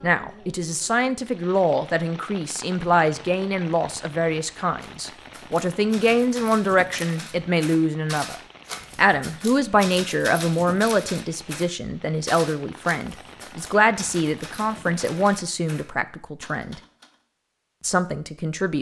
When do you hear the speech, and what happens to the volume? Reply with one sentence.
The speech can be heard from 0.0 to 16.8 s, at a steady volume; and briefly from 17.8 to 18.7 s.